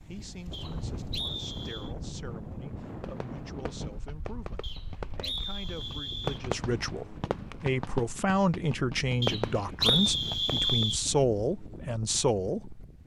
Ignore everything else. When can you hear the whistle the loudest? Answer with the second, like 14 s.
10 s.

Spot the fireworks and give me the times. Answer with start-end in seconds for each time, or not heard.
3.0-10.8.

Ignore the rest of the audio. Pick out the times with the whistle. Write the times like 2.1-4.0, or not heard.
0.5-1.9, 4.6-6.5, 9.2-11.0.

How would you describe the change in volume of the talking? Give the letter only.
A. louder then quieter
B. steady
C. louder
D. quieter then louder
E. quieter
C.